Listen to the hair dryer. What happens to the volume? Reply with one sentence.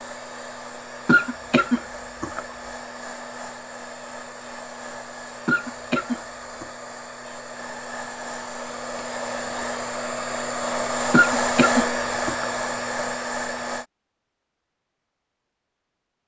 The volume of the hair dryer goes up.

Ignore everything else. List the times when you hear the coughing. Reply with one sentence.
You can hear the coughing from 1.1 to 2.5 s, from 5.5 to 6.7 s and from 11.1 to 12.5 s.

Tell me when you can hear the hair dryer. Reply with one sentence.
The hair dryer can be heard from 0.0 to 13.8 s.